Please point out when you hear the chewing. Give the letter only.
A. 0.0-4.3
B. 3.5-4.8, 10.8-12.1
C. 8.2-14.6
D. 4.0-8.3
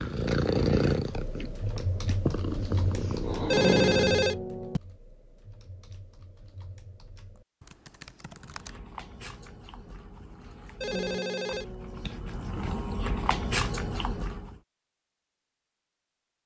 C.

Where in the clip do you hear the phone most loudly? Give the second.
4 s.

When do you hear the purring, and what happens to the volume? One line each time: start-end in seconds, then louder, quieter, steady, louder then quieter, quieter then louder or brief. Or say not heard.
0.0-4.3 quieter then louder.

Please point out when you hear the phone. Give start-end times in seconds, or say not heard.
3.5-4.8, 10.8-12.1.